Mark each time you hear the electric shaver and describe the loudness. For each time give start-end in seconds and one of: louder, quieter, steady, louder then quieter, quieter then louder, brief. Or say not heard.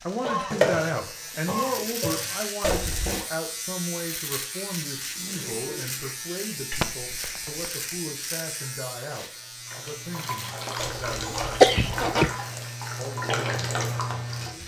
0.0-14.6 quieter.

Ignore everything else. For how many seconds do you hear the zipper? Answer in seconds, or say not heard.
3 s.